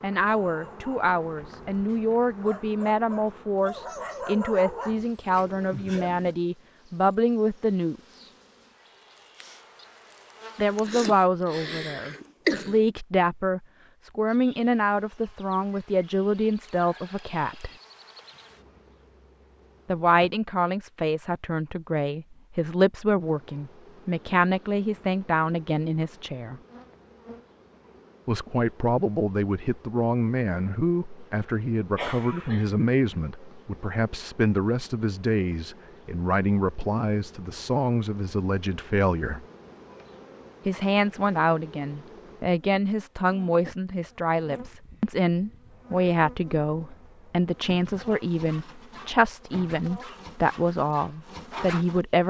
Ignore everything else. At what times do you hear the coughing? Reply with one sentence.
You can hear the coughing from 10.7 to 12.8 s and from 31.9 to 32.9 s.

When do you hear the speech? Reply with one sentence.
You can hear the speech from 0.0 to 8.3 s, from 10.6 to 17.7 s, from 19.9 to 26.6 s, from 28.2 to 39.5 s and from 40.6 to 52.2 s.